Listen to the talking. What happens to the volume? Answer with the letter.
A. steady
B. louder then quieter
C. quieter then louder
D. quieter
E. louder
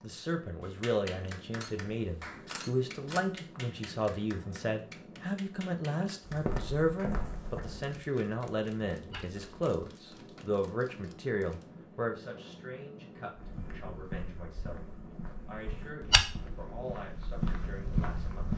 D.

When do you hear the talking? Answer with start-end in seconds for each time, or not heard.
0.0-14.8, 15.4-18.5.